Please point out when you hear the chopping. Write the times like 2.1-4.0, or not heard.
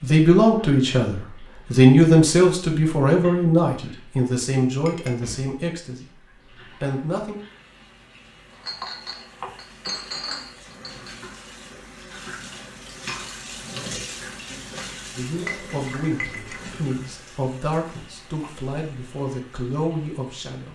8.5-9.6.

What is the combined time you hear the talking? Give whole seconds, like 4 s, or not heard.
13 s.